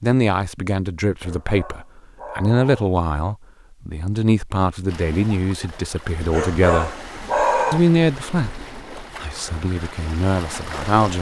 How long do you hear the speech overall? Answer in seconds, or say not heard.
10 s.